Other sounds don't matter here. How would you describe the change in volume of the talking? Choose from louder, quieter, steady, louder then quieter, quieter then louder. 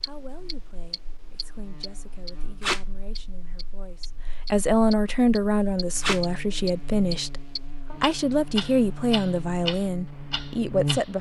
louder.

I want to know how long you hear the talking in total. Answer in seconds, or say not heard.
11 s.